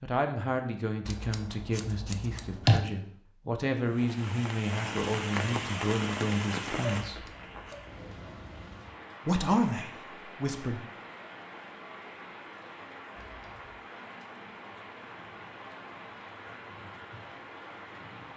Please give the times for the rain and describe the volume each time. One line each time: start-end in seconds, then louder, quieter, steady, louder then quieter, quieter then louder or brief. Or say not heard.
3.8-18.3 quieter.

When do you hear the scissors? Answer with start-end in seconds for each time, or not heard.
1.1-2.9, 7.0-8.0, 13.2-13.8.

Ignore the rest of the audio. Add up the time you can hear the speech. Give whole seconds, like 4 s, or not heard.
9 s.